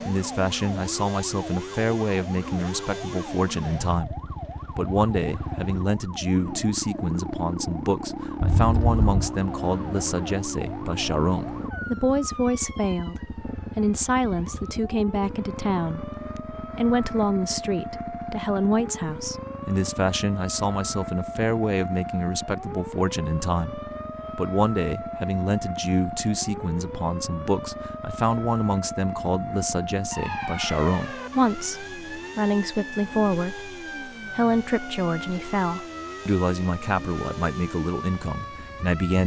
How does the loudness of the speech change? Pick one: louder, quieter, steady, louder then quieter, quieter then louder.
steady.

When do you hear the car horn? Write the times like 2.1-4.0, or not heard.
8.4-9.3.